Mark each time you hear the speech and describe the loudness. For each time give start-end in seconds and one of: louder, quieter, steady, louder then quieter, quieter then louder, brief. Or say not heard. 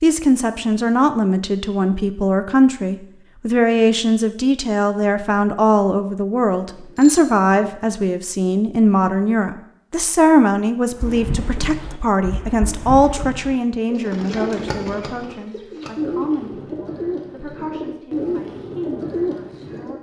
0.0-19.9 quieter.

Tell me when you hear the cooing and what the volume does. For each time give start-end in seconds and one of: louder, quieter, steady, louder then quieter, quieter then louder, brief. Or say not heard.
10.9-19.9 louder.